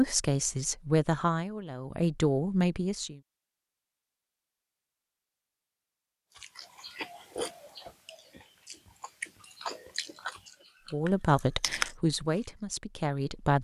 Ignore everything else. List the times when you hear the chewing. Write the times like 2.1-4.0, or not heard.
6.3-12.4.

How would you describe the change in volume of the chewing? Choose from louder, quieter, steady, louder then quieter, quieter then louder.
quieter then louder.